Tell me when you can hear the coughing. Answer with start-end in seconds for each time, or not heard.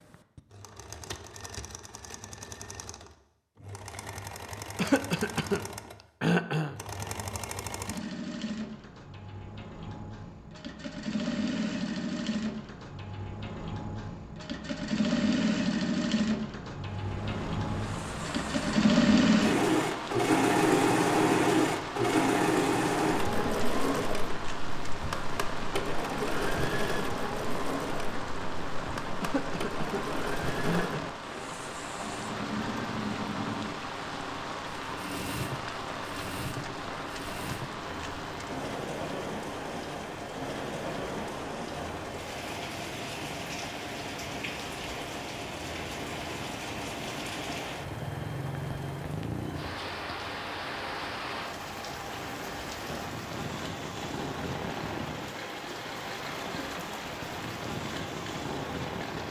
4.8-6.8, 29.2-31.0, 56.5-57.1.